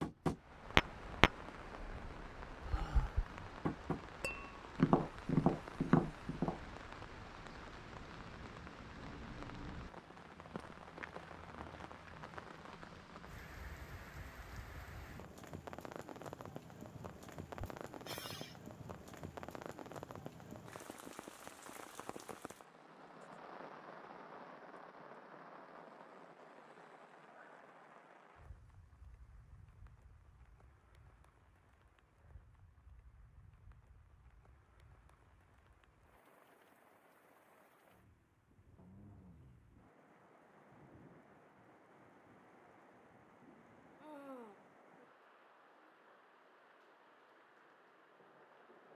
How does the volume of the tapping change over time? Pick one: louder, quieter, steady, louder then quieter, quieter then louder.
quieter then louder.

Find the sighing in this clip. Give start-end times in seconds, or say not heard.
2.6-3.2, 17.9-18.6, 44.0-44.6.